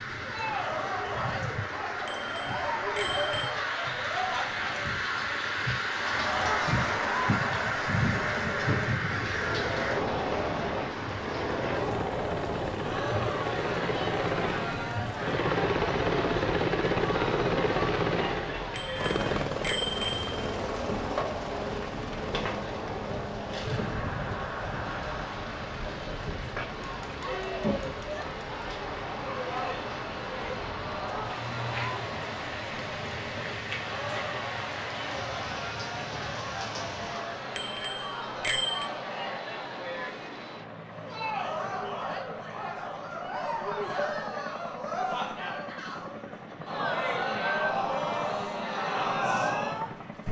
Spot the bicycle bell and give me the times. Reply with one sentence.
The bicycle bell can be heard from 2.0 to 3.5 s, from 18.8 to 20.5 s and from 37.5 to 38.9 s.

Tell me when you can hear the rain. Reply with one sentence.
The rain can be heard from 0.0 to 37.5 s.